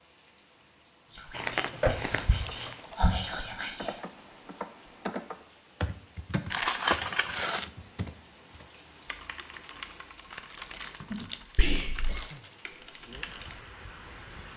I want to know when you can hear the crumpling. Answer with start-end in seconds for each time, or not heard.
1.3-2.8, 6.5-7.7, 10.3-12.5.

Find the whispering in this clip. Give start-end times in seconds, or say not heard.
1.1-4.0, 11.6-12.2.